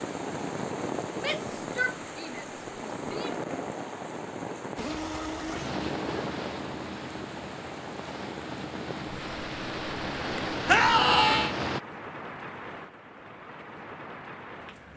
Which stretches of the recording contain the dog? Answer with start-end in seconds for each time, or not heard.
not heard.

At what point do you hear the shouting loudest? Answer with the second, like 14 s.
11 s.